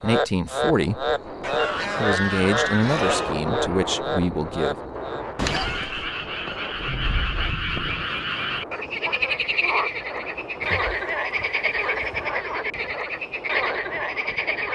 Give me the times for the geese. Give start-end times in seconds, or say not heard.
1.4-3.4, 5.3-8.0, 10.6-12.3.